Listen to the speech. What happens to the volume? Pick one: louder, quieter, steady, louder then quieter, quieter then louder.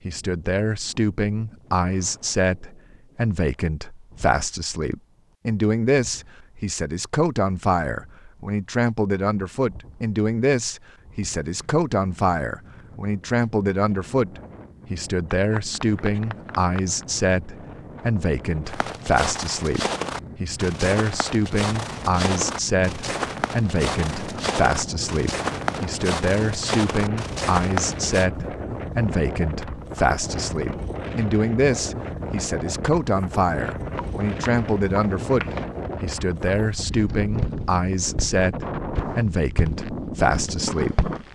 steady.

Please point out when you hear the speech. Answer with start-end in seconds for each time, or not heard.
0.1-41.0.